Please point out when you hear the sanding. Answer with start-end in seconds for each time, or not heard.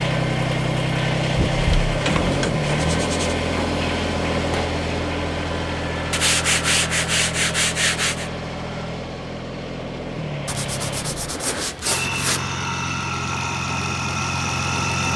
1.5-3.4, 6.1-8.3, 10.4-12.5.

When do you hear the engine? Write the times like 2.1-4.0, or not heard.
0.0-15.1.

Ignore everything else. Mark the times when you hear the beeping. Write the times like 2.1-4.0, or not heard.
not heard.